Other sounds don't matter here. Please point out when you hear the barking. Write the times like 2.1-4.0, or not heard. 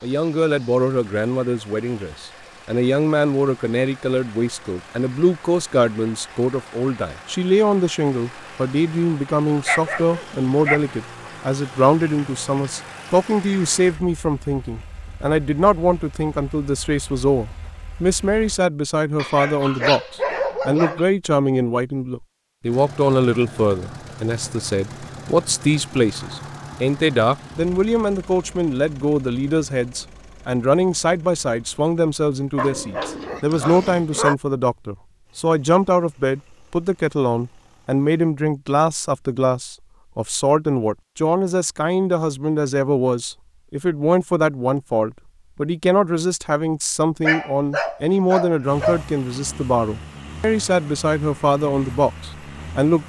9.7-10.9, 19.1-21.1, 32.5-34.4, 47.2-49.0.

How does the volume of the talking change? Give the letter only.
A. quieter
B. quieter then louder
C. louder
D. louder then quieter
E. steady
E.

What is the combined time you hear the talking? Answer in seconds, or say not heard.
53 s.